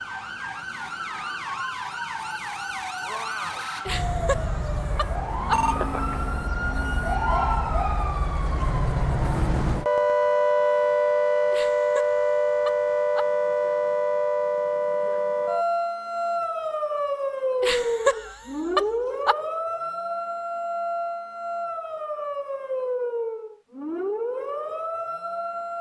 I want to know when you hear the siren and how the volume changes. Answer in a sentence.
You can hear the siren from 0.0 to 25.7 s, getting louder then quieter.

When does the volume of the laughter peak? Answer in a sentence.
The loudest moment of the laughter is at 18 seconds.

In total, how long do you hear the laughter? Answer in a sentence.
The laughter can be heard for 5 seconds in total.